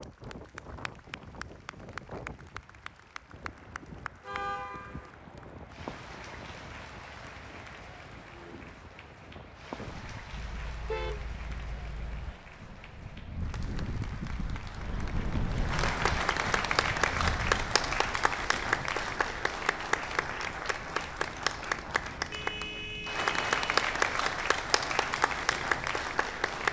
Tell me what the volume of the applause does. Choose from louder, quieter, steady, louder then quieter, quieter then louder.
louder.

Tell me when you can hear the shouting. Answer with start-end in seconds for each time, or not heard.
not heard.